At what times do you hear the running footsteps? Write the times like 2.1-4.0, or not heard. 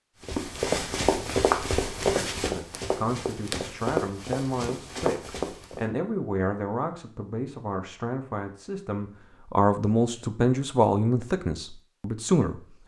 0.2-5.8.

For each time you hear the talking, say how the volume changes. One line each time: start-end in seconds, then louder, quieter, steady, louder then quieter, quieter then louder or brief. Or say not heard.
2.5-12.6 louder.